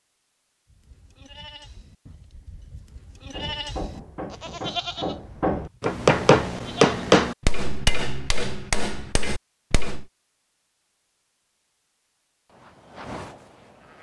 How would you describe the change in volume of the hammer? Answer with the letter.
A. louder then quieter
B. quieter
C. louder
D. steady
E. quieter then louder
A.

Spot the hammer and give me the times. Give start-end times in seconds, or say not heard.
3.3-10.1.